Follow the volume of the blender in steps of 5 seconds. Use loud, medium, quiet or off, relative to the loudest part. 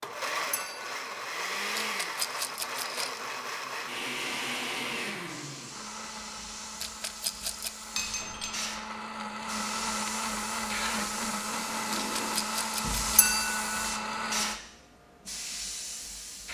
loud, medium, loud, off.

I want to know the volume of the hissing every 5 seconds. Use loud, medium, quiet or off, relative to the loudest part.
off, medium, loud, loud.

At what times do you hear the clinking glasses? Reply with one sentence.
The clinking glasses can be heard from 0.5 to 0.9 s, from 8.0 to 8.5 s and from 13.2 to 13.6 s.